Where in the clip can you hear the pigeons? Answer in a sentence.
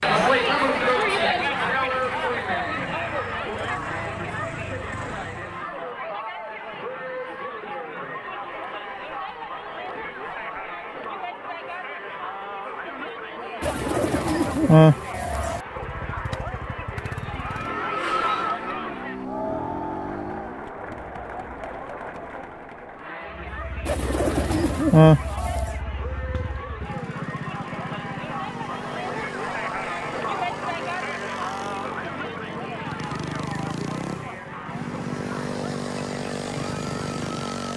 You can hear the pigeons from 13.6 to 15.6 s and from 23.9 to 25.8 s.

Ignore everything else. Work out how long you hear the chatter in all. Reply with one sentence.
You can hear the chatter for 38 seconds altogether.